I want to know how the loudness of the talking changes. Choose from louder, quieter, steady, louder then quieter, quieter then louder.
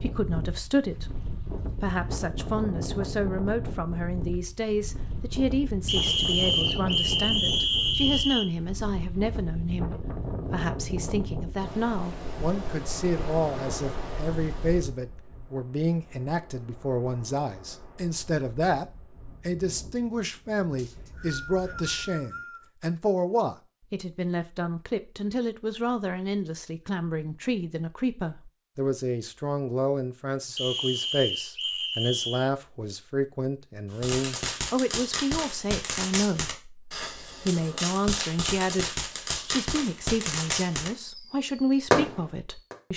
steady.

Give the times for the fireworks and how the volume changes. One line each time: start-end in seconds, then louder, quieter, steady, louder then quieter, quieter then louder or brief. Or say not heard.
34.0-42.8 louder.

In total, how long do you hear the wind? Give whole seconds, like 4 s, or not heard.
22 s.